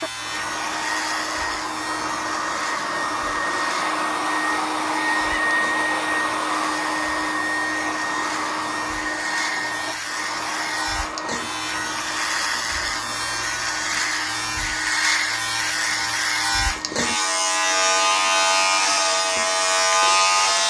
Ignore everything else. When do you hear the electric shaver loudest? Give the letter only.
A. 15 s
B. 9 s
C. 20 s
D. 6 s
C.